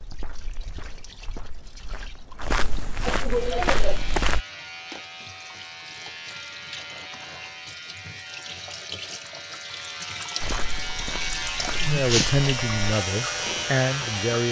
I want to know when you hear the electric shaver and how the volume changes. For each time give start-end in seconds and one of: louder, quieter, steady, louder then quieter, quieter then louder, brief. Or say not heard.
3.2-14.4 louder.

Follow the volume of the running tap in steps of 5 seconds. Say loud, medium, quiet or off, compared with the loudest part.
quiet, medium, loud.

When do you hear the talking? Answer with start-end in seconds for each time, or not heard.
11.8-14.4.